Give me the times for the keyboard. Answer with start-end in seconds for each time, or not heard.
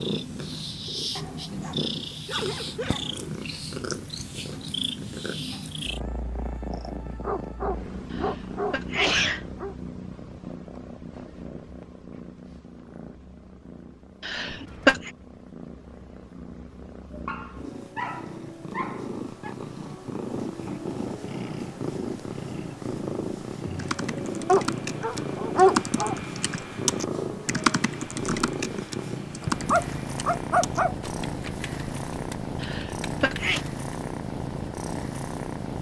23.8-33.8.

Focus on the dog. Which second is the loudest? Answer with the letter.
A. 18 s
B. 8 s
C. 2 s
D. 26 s
D.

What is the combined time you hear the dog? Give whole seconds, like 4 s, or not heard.
10 s.